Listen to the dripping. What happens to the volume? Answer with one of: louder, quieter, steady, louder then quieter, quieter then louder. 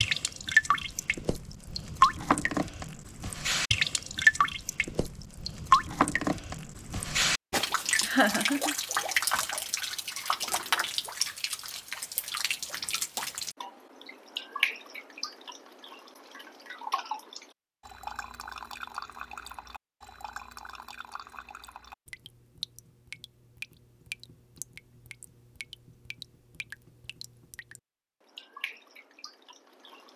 quieter.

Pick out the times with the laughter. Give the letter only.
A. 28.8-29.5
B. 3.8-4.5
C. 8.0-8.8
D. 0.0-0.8
C.